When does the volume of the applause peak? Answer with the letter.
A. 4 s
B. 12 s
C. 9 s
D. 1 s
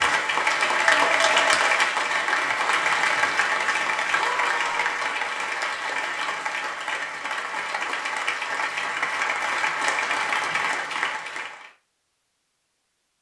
D.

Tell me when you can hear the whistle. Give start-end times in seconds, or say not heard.
not heard.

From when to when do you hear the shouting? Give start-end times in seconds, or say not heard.
4.1-5.0.